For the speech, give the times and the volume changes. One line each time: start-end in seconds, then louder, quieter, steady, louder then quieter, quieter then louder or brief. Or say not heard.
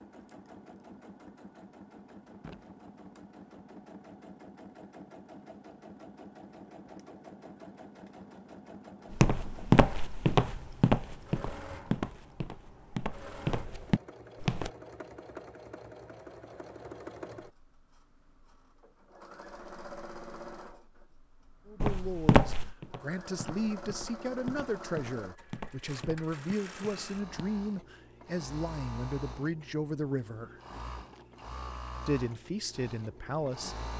21.6-30.6 steady
32.0-33.9 brief.